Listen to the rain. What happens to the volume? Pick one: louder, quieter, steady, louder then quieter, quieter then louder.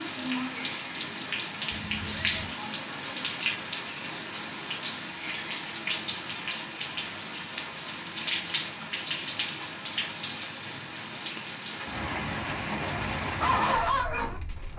steady.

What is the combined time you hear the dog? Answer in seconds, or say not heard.
2 s.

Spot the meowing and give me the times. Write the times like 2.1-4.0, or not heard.
1.7-2.5.